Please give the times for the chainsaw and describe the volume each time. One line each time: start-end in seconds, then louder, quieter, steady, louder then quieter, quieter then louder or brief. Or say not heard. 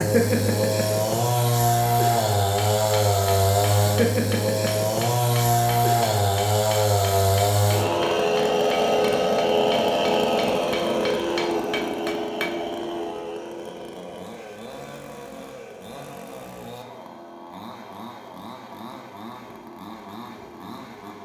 0.0-21.1 quieter.